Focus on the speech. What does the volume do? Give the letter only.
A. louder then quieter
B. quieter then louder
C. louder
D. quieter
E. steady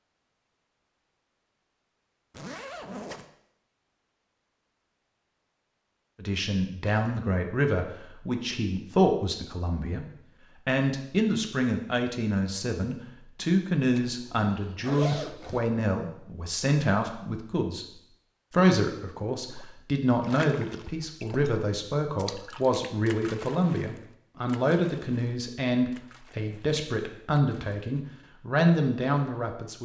E.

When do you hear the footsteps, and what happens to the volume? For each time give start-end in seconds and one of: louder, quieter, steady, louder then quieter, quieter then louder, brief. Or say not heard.
not heard.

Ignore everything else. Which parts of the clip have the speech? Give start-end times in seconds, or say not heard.
6.2-10.1, 10.7-29.7.